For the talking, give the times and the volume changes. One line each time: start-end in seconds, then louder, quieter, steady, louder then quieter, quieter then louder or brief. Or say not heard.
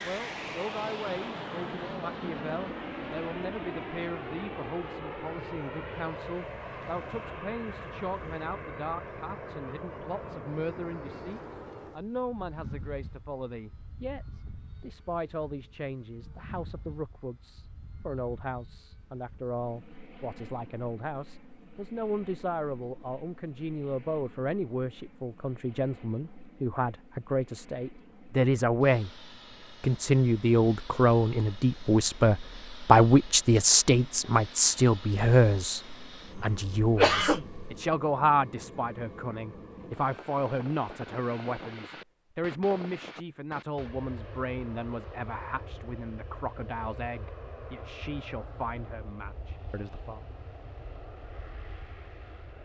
0.0-29.1 louder
29.8-50.2 quieter.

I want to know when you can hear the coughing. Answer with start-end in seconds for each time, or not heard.
36.3-37.7.